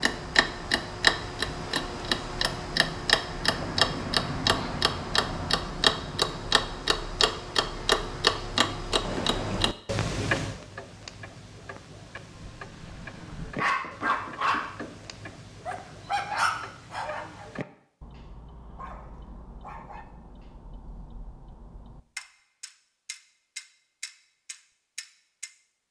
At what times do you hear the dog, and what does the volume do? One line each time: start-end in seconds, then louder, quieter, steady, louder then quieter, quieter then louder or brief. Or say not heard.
12.3-20.6 quieter.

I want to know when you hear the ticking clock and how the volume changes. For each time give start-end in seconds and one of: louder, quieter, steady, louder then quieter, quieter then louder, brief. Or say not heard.
0.0-25.5 quieter.